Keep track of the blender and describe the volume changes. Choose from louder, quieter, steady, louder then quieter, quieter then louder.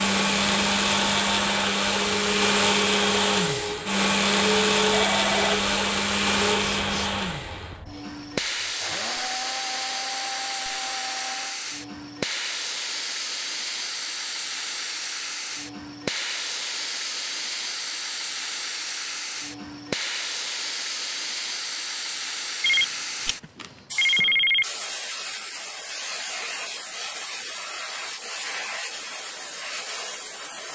quieter.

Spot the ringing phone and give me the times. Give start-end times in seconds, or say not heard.
4.9-5.6, 22.6-24.6.